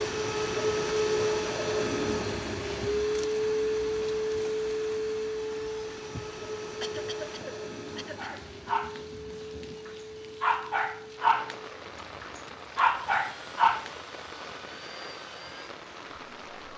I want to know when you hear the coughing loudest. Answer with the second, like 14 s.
7 s.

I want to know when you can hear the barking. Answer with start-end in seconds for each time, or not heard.
8.0-9.0, 9.8-11.6, 12.2-13.9.